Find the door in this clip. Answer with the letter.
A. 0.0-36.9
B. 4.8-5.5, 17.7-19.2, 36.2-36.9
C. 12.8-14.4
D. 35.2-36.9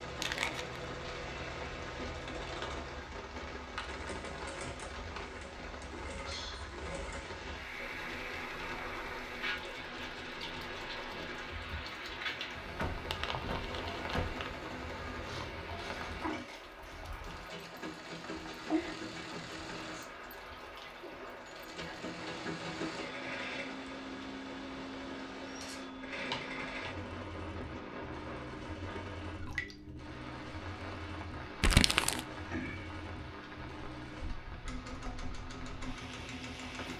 C.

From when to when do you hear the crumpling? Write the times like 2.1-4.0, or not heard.
0.1-0.8, 13.1-14.6, 31.6-32.2.